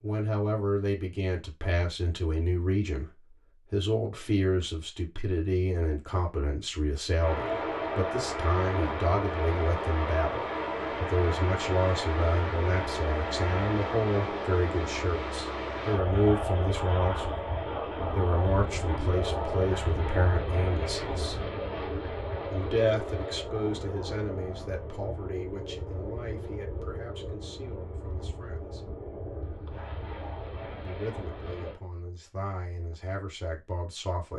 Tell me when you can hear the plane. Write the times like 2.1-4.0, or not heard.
7.2-31.8.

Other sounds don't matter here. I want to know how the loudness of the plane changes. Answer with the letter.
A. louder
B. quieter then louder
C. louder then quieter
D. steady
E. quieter
E.